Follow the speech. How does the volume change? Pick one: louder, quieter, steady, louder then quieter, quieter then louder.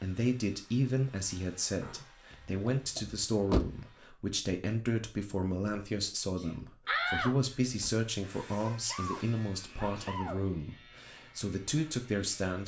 steady.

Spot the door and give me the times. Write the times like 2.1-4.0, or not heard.
2.3-3.8, 6.8-7.9.